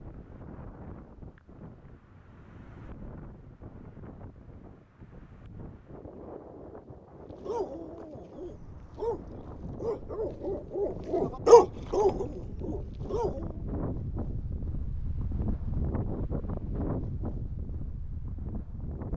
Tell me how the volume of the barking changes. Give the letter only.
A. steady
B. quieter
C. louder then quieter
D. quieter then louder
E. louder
C.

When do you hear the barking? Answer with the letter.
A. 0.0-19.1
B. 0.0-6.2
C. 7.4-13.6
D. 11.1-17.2
C.